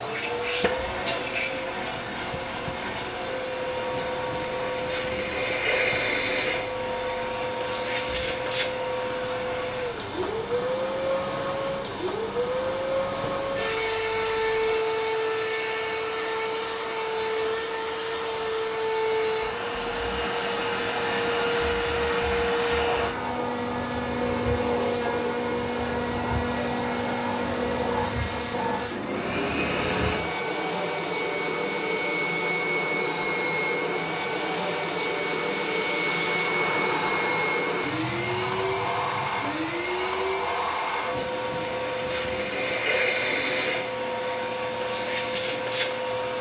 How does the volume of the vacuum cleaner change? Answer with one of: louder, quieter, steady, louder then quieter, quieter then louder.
steady.